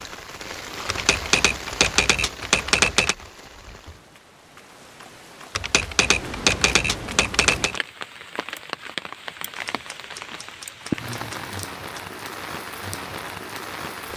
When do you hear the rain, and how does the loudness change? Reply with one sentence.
The rain can be heard from 0.0 to 14.1 s, getting quieter then louder.